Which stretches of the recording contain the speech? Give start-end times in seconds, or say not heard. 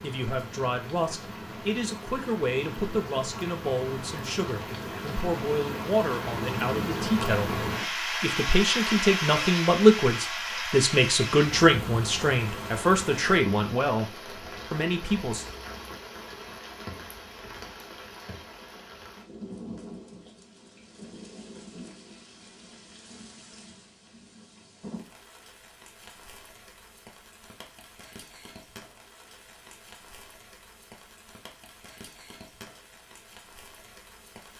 0.0-15.4.